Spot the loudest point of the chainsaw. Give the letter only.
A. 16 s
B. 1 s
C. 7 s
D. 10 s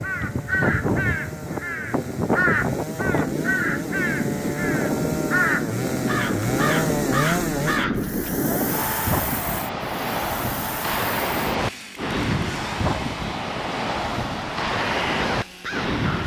C.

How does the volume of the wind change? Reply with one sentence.
The loudness of the wind stays about the same.